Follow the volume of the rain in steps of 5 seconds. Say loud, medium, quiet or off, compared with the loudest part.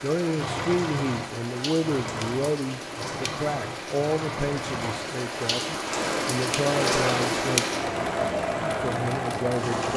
medium, loud.